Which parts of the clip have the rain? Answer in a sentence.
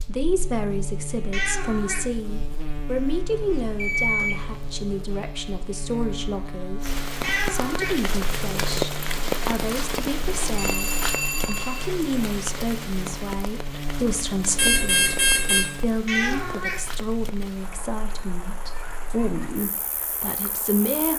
The rain can be heard from 6.8 to 21.1 s.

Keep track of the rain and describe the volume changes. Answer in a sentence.
The volume of the rain goes down.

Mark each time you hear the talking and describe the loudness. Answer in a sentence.
The talking can be heard from 0.1 to 21.1 s, at a steady volume.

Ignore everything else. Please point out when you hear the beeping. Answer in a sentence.
The beeping can be heard from 3.3 to 5.0 s, from 10.6 to 11.8 s and from 14.6 to 15.7 s.